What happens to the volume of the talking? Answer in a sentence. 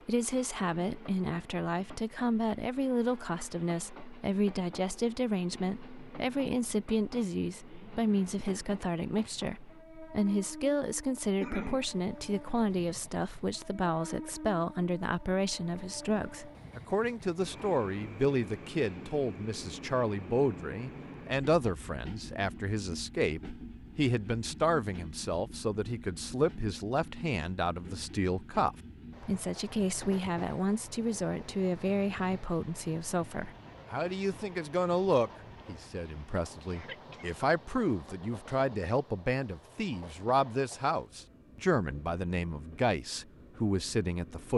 The loudness of the talking stays about the same.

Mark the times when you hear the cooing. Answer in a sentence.
You can't hear the cooing here.